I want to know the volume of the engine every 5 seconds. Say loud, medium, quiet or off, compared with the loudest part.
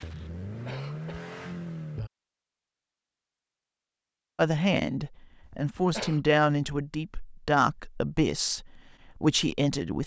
loud, off.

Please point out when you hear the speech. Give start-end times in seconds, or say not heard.
4.3-10.0.